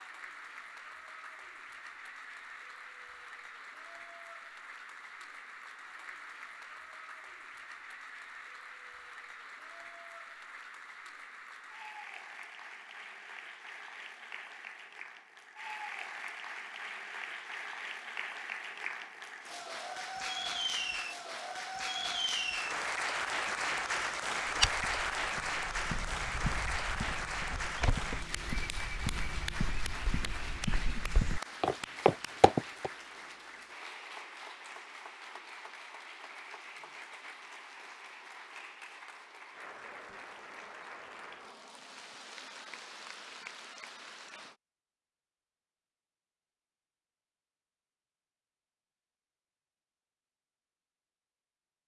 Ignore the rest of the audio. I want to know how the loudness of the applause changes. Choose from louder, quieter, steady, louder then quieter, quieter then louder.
louder then quieter.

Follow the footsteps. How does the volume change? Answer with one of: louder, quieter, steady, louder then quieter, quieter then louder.
louder.